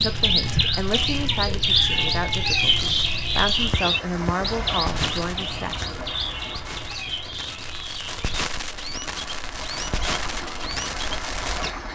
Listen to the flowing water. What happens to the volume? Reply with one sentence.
The volume of the flowing water goes down, then up.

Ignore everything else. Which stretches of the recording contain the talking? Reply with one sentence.
You can hear the talking from 0.0 to 6.0 s.